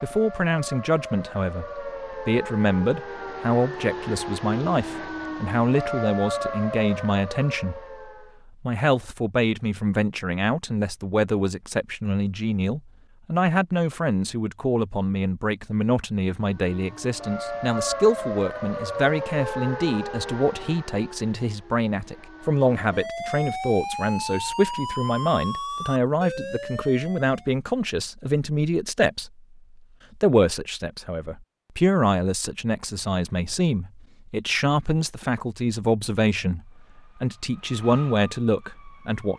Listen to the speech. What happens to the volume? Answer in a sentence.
The loudness of the speech stays about the same.